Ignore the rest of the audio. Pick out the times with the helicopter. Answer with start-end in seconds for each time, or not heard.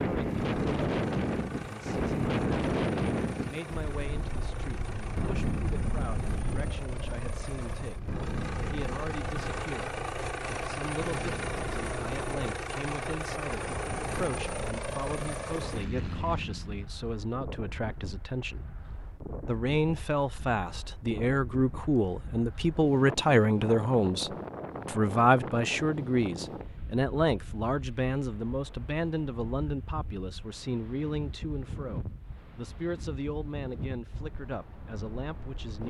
0.2-16.9.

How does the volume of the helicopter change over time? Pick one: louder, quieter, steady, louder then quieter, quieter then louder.
louder.